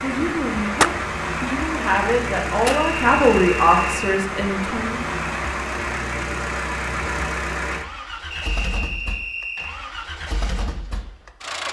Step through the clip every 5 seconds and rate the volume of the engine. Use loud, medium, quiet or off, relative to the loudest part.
loud, loud, medium.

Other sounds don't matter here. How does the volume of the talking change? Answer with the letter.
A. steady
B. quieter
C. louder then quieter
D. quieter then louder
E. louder
C.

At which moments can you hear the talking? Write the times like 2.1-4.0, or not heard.
0.0-5.0.